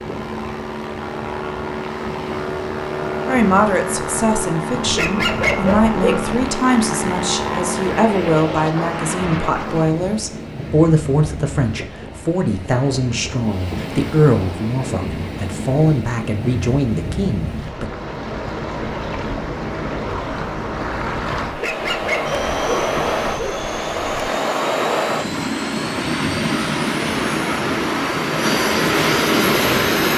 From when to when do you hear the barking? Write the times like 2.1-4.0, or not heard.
4.8-6.5, 21.5-24.3.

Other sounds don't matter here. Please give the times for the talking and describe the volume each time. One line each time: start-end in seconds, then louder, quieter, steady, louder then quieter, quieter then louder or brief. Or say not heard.
3.2-17.9 steady.